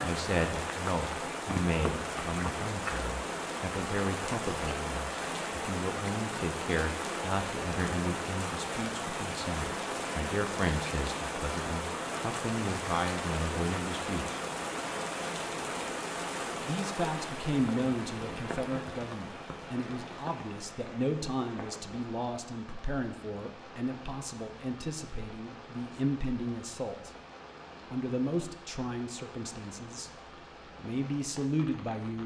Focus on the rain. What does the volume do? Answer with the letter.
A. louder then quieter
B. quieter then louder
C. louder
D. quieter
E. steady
D.